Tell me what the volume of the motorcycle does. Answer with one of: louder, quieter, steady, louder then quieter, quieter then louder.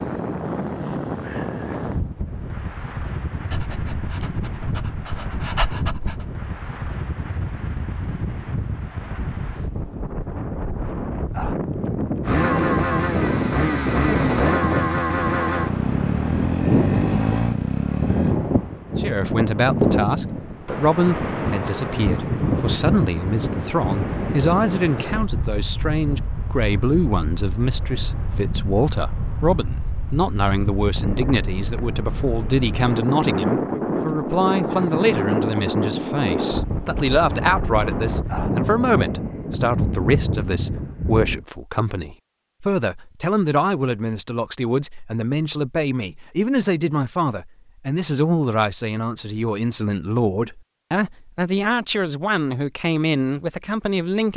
steady.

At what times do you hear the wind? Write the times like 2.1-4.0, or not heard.
0.0-41.5.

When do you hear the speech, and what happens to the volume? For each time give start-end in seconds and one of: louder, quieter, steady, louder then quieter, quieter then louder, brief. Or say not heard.
18.9-54.3 steady.